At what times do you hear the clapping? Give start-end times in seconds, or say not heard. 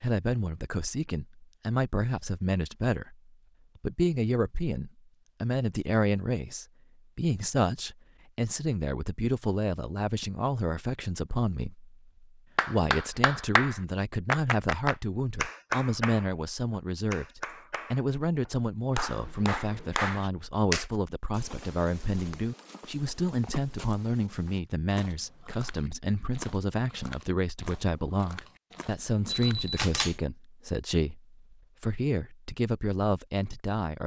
12.6-20.9.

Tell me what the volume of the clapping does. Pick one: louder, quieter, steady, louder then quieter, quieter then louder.
quieter then louder.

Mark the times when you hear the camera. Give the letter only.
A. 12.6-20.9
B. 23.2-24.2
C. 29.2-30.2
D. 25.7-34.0
C.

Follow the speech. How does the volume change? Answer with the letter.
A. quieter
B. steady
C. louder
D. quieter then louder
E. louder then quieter
B.